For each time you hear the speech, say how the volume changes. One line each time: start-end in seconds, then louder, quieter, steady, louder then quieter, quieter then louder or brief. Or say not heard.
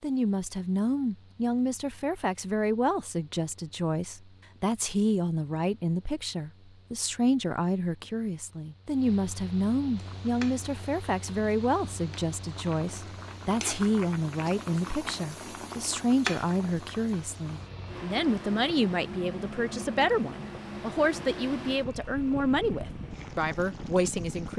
0.0-24.5 steady.